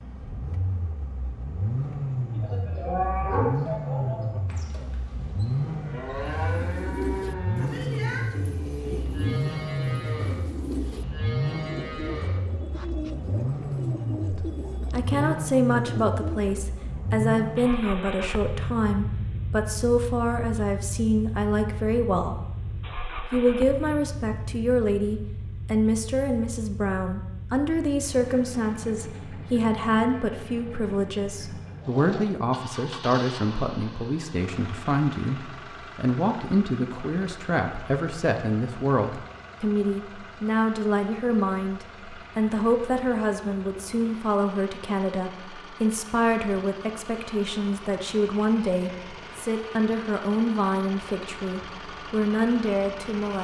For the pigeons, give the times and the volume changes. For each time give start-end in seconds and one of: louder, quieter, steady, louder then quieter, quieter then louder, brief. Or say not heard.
6.4-16.9 steady.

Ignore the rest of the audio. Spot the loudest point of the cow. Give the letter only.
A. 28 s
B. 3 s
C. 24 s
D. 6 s
B.